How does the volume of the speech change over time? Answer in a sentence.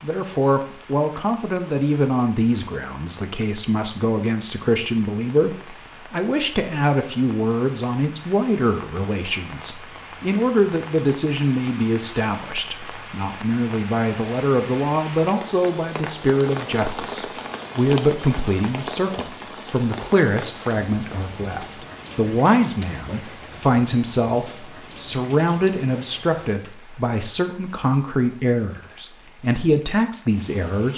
The loudness of the speech stays about the same.